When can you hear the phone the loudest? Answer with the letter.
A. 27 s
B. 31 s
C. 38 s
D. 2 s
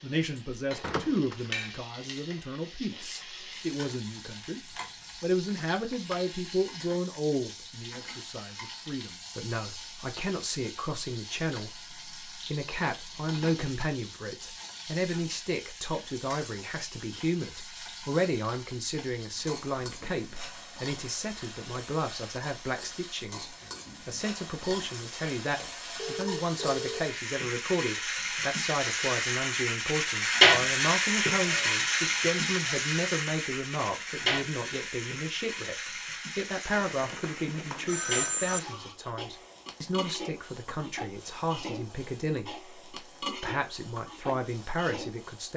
C.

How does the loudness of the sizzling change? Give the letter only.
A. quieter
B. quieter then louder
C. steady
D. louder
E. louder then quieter
E.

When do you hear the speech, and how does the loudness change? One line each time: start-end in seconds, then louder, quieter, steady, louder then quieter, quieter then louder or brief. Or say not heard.
0.0-45.5 steady.